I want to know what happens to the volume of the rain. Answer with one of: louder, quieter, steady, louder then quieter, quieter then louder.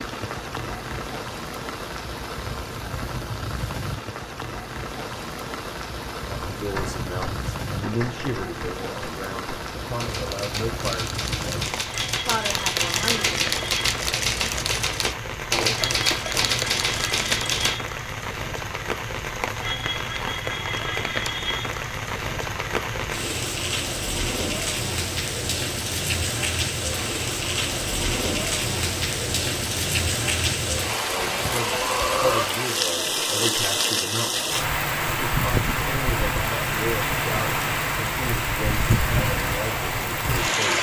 louder.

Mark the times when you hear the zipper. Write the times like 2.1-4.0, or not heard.
not heard.